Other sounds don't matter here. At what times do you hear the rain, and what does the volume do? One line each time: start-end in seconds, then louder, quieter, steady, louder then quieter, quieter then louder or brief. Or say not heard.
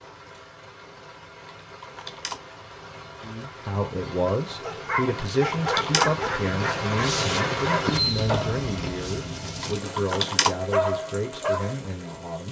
0.0-12.4 louder then quieter.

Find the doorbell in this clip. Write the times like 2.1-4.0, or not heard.
not heard.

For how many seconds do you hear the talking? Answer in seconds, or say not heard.
9 s.